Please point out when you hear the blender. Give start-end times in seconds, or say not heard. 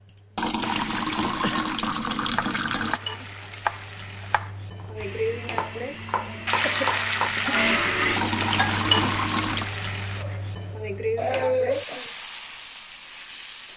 5.0-8.2.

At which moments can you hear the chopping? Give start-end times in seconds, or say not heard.
2.2-7.3.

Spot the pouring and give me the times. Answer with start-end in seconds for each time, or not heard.
0.3-3.0, 8.2-9.7.